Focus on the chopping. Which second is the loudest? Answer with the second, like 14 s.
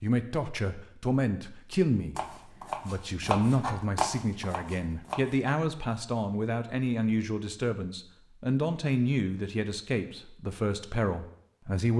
4 s.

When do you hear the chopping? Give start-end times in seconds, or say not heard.
2.1-5.5.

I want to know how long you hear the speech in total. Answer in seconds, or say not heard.
11 s.